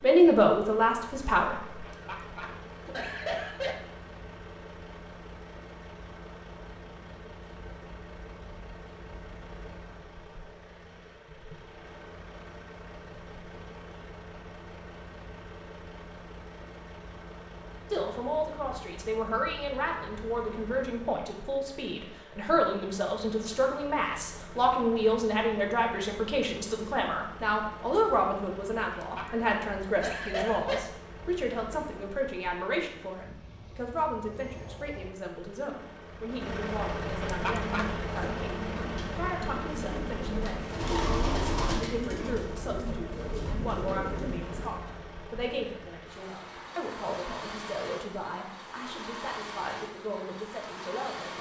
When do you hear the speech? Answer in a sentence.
You can hear the speech from 0.0 to 1.9 s and from 17.9 to 51.3 s.